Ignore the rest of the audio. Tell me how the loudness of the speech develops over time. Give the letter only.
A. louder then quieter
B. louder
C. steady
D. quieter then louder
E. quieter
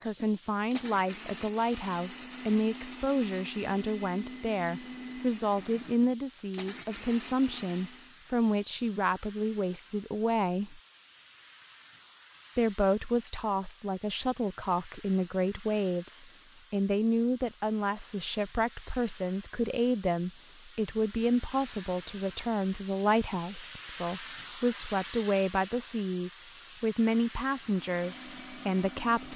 C.